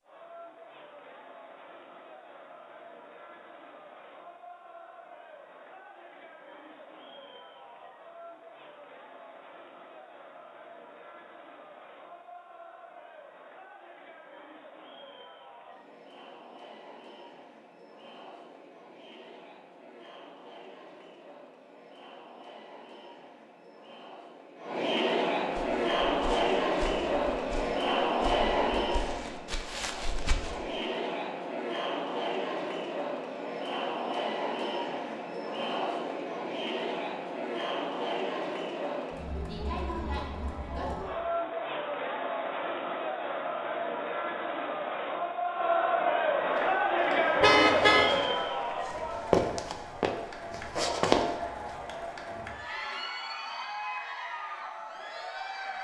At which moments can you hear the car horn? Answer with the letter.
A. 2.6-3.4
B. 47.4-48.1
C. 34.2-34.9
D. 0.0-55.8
B.